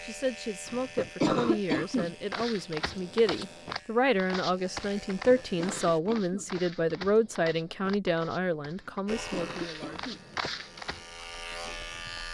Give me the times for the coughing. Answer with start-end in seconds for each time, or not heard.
0.7-2.1, 5.2-6.5, 8.8-10.2.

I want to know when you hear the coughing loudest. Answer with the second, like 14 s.
1 s.